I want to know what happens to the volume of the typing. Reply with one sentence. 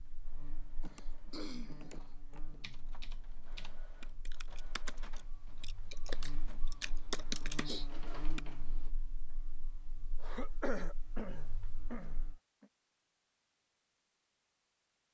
The loudness of the typing goes up.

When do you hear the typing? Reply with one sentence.
The typing can be heard from 2.4 to 8.4 s.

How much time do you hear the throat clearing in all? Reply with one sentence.
The throat clearing can be heard for 4 seconds in total.